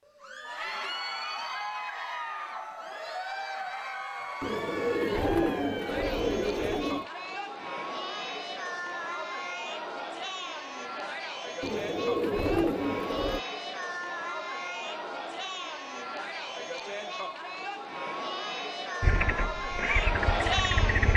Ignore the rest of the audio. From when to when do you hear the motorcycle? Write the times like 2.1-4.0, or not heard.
19.0-21.1.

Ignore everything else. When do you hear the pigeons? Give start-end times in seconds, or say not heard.
4.4-7.0, 11.6-13.4.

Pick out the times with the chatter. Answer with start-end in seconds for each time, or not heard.
0.0-21.1.